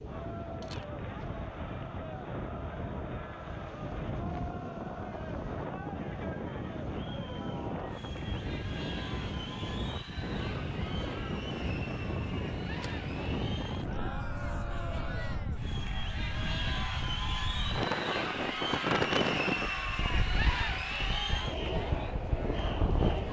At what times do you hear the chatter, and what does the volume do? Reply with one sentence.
The chatter can be heard from 0.0 to 23.2 s, getting louder.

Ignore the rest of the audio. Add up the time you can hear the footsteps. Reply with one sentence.
The footsteps can't be heard in this clip.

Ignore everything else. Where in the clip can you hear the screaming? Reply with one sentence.
The screaming can't be heard in this clip.